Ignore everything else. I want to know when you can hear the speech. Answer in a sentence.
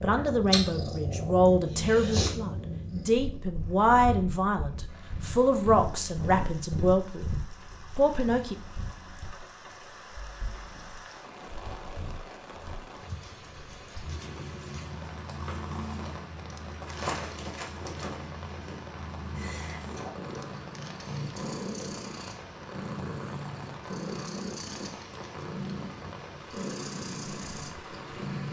The speech can be heard from 0.0 to 7.3 s and from 8.0 to 8.6 s.